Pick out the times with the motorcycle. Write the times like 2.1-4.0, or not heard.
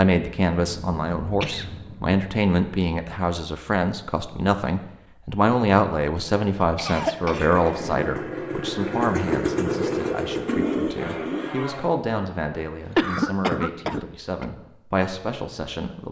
7.2-11.9.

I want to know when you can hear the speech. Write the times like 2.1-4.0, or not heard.
0.0-16.0.